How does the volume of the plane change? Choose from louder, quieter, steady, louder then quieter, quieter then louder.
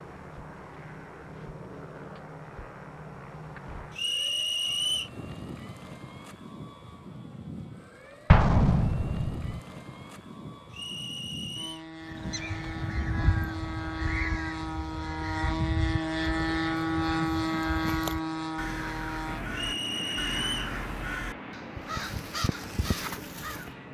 louder then quieter.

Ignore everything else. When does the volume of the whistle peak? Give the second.
5 s.